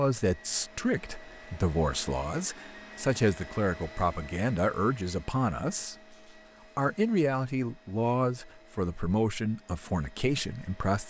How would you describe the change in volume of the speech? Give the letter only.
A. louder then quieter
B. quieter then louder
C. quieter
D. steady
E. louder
D.